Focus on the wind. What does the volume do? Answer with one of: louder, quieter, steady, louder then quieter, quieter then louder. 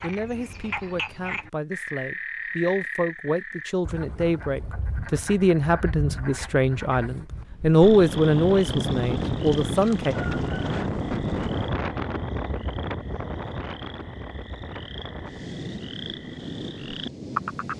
quieter.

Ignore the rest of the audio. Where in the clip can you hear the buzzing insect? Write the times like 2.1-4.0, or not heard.
not heard.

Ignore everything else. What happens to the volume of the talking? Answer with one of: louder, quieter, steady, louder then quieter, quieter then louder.
louder.